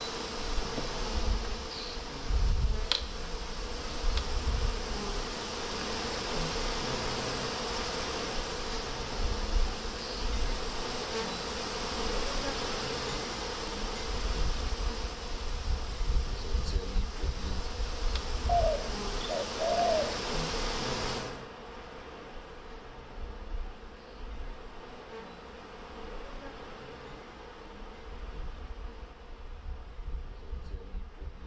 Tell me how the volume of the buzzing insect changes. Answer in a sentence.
The volume of the buzzing insect goes down.